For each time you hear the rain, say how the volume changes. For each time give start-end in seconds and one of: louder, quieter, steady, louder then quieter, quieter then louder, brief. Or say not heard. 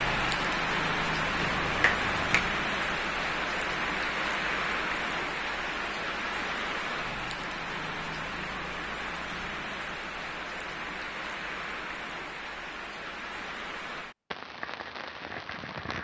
0.0-15.9 quieter.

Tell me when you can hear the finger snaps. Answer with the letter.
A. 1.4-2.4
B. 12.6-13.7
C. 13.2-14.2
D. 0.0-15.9
A.